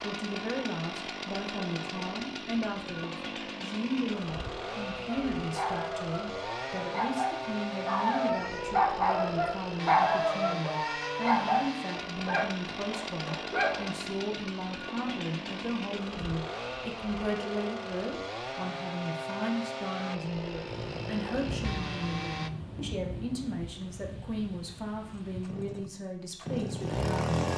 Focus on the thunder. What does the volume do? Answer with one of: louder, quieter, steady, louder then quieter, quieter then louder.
quieter.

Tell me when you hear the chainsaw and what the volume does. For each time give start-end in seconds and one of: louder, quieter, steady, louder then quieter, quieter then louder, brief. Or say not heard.
0.0-22.5 steady
25.2-27.5 brief.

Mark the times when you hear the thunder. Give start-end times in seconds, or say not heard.
20.6-25.6.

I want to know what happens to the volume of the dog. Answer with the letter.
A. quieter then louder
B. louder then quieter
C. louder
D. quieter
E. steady
B.